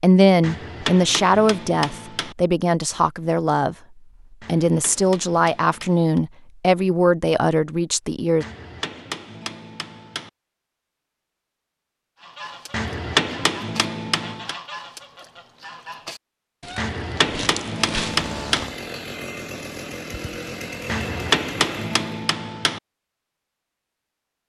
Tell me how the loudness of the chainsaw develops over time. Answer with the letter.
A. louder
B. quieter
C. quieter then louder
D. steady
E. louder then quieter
D.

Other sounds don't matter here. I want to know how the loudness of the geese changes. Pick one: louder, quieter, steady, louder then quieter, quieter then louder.
louder.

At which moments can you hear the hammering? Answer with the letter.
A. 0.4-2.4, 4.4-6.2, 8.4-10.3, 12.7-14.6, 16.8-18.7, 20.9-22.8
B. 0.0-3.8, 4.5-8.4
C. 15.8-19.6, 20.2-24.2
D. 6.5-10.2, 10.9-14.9
A.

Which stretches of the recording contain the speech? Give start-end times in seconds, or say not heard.
0.0-3.8, 4.5-8.4.